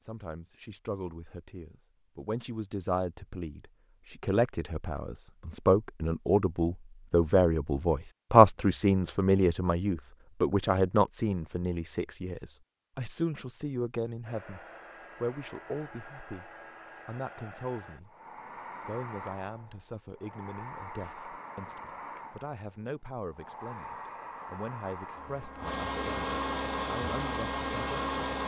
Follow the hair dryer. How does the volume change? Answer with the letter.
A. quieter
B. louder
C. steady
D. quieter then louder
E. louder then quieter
B.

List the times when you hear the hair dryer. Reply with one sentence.
You can hear the hair dryer from 14.2 to 28.4 s.